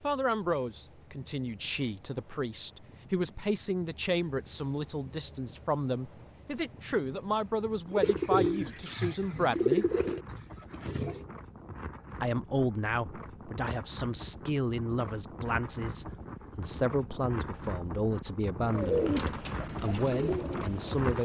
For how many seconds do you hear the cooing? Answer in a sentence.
The cooing can be heard for 6 seconds in total.